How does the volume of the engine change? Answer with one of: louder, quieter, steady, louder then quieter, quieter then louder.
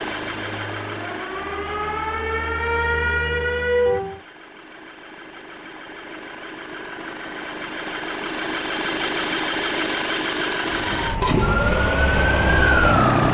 quieter then louder.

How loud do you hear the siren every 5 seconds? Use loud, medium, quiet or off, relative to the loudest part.
loud, off, loud.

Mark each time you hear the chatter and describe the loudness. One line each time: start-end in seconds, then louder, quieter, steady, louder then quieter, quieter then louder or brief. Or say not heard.
not heard.